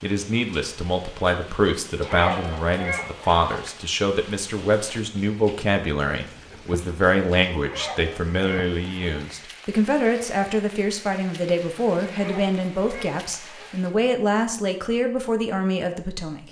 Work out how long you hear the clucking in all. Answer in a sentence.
The clucking can be heard for 5 seconds in total.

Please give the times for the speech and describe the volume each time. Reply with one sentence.
The speech can be heard from 0.0 to 16.4 s, at a steady volume.